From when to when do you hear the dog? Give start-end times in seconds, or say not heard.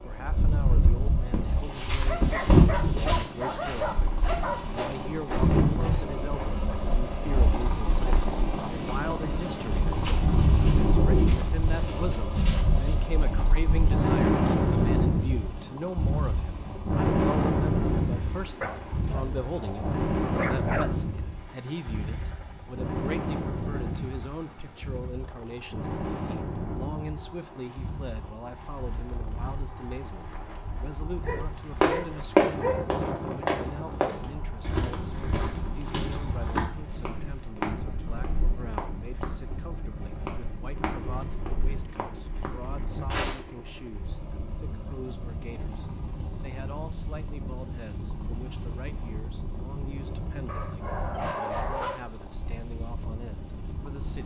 2.0-5.0, 18.6-20.9, 31.2-32.9, 50.5-52.0.